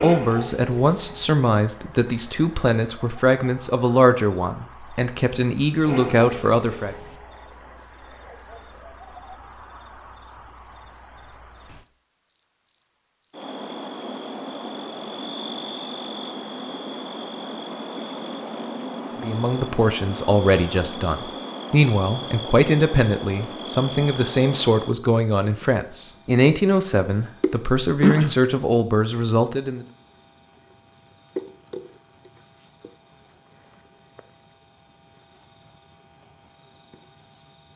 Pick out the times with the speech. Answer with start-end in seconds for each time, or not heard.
0.0-7.0, 19.2-29.9.